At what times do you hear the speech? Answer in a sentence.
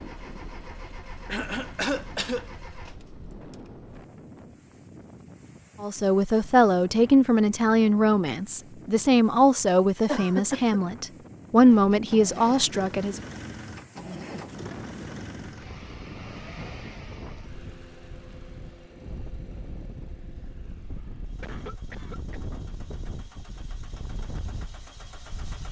You can hear the speech from 5.8 to 13.2 s.